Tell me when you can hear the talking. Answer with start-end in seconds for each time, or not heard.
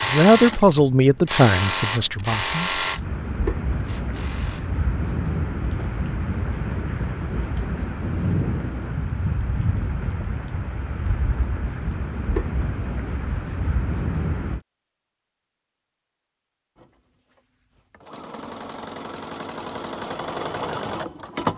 0.0-2.9.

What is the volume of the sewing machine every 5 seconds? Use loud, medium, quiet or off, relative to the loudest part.
loud, off, off, medium, loud.